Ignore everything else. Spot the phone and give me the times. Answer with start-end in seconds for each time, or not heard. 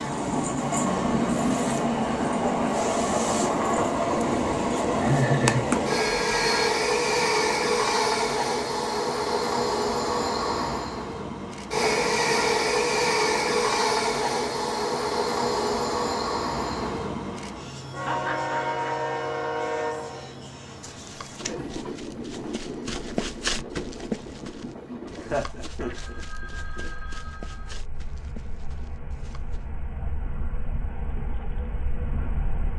5.9-6.7, 25.8-27.8.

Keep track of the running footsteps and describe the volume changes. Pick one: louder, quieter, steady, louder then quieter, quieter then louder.
louder then quieter.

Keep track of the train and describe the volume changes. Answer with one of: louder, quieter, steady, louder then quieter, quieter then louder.
quieter.